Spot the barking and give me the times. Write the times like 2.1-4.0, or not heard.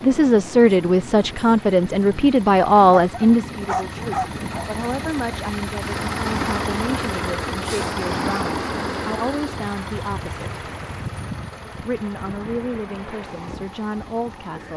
3.0-4.7.